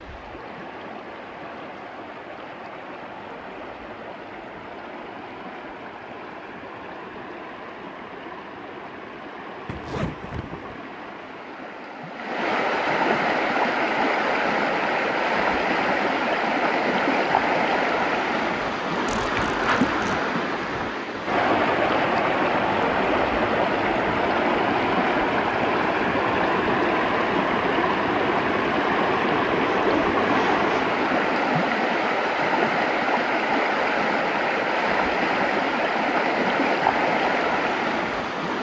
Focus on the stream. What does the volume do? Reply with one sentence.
The loudness of the stream goes up.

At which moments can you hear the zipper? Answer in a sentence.
The zipper can be heard from 9.7 to 10.8 s, from 19.1 to 20.1 s and from 29.6 to 30.9 s.